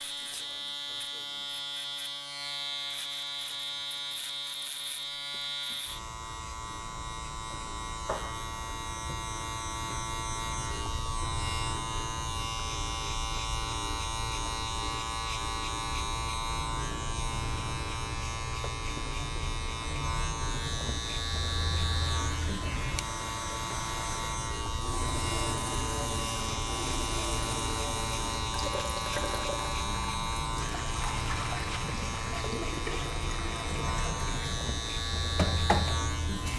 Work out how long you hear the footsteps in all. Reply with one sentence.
You can't hear the footsteps here.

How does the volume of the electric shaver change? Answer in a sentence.
The volume of the electric shaver stays about the same.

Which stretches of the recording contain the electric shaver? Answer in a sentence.
You can hear the electric shaver from 0.0 to 36.5 s.